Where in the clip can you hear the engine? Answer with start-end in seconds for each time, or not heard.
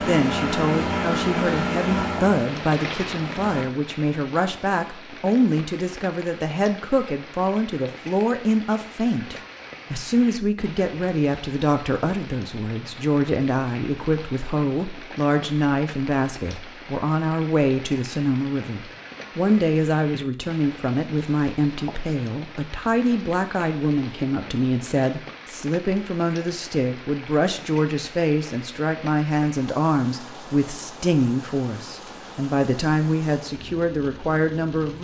0.0-3.6.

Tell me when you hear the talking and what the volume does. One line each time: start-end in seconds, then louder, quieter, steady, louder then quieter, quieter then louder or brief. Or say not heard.
0.0-34.9 steady.